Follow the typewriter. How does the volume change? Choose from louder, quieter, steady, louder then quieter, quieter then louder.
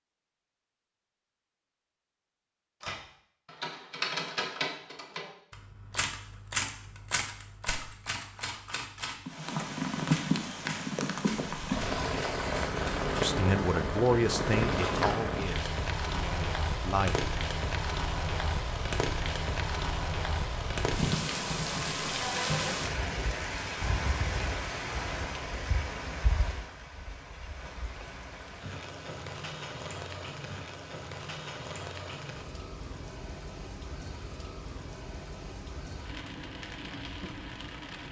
quieter.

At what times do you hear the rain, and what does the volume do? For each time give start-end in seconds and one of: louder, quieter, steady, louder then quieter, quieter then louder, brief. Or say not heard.
9.2-38.0 quieter.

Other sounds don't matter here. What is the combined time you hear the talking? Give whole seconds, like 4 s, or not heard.
4 s.